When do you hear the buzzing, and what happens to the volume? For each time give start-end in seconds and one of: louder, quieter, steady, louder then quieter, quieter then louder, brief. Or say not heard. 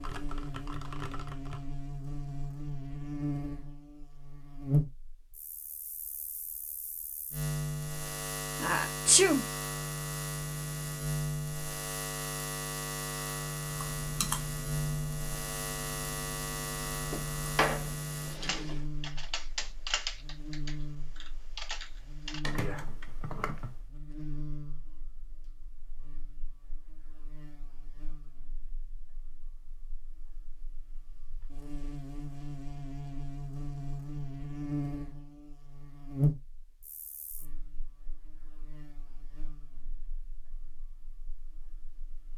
0.0-42.3 quieter then louder.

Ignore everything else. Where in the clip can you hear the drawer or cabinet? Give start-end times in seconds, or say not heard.
17.1-18.8.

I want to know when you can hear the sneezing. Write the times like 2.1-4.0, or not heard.
8.6-9.4.